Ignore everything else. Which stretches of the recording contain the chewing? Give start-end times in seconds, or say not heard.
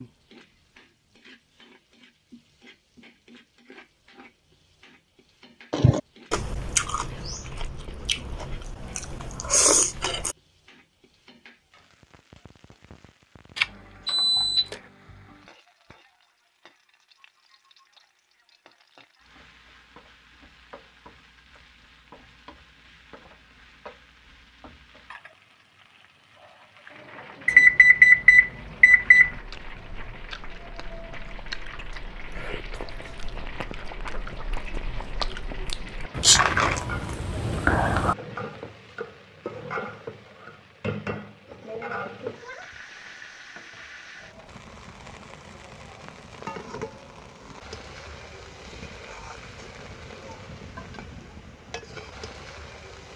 5.7-10.3, 29.3-38.1.